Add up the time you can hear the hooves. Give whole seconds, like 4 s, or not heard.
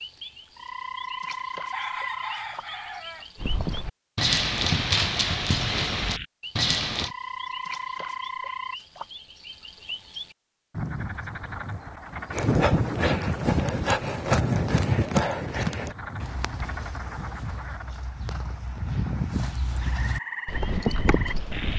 13 s.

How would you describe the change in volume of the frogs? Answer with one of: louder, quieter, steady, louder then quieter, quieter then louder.
steady.